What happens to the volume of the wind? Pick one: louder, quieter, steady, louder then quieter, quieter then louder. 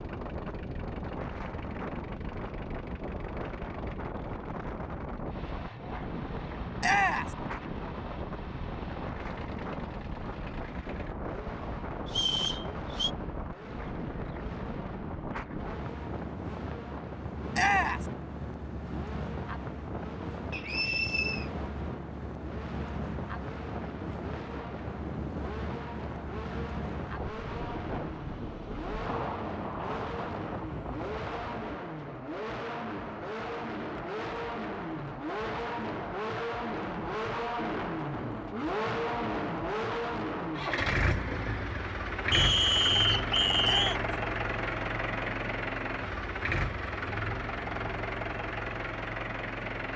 steady.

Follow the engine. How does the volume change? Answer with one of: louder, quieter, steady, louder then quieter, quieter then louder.
louder.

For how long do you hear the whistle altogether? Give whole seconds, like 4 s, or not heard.
4 s.